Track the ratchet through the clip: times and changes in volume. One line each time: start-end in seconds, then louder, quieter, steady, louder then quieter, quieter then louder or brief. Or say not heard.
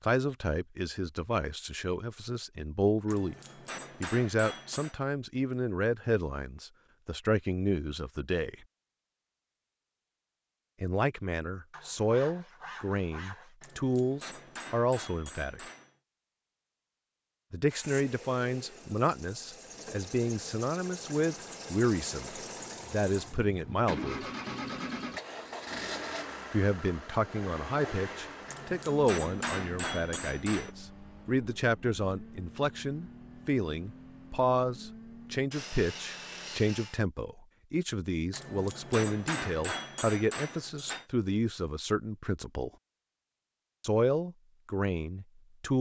not heard.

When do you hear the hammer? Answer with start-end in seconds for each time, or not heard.
3.0-5.0, 13.6-15.9, 28.4-30.7, 38.3-41.0.